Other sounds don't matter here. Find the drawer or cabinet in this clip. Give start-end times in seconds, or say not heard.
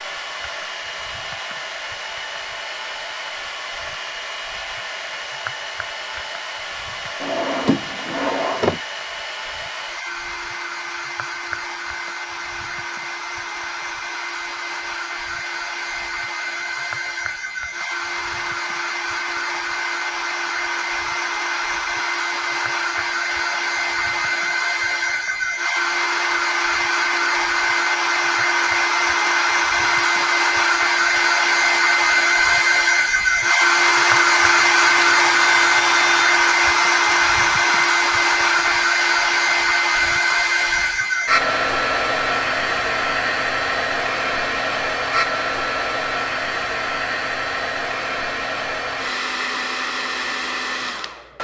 7.2-8.8.